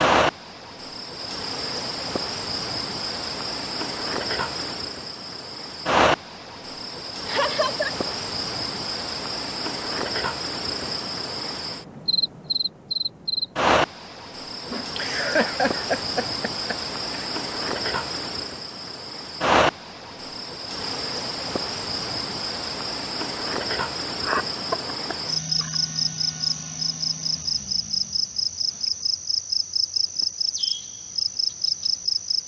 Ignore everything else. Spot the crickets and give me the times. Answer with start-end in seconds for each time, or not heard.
0.0-32.4.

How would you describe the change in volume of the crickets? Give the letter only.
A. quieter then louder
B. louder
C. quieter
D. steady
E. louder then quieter
D.